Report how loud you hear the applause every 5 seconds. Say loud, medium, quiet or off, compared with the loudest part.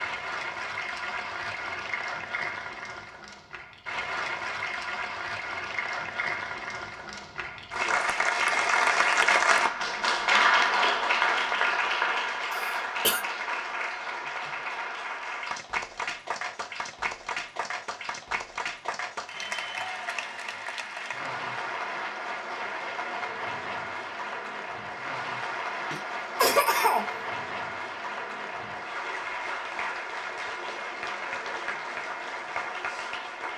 medium, loud, loud, medium, medium, medium, medium.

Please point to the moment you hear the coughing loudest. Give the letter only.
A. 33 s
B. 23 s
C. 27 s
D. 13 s
C.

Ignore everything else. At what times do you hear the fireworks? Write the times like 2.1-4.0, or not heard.
not heard.